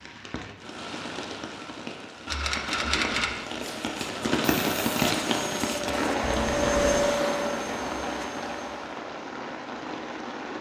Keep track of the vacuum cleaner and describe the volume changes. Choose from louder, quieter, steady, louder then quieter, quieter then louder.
louder then quieter.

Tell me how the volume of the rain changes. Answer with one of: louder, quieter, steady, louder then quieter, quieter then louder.
louder then quieter.